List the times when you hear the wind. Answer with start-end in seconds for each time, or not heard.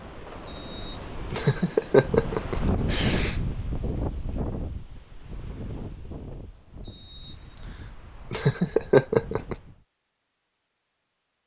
0.0-9.8.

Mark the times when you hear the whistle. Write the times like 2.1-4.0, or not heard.
0.5-1.1, 6.8-8.0.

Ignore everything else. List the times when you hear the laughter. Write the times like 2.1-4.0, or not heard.
0.8-3.4, 7.8-9.6.